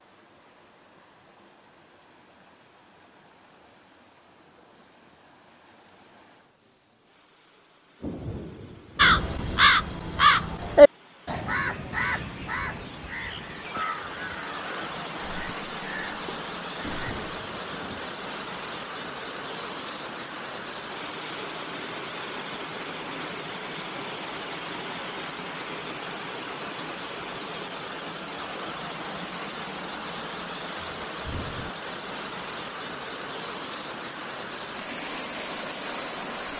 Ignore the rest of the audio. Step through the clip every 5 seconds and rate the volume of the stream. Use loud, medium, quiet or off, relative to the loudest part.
quiet, quiet, medium, loud, loud, loud, loud, loud.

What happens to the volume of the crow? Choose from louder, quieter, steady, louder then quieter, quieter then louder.
quieter.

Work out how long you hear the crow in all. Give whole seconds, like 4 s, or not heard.
8 s.